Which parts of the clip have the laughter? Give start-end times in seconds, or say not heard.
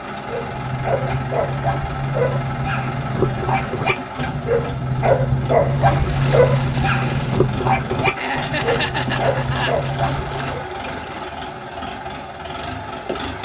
8.2-9.8.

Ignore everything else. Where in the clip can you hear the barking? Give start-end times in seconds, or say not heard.
0.1-10.7.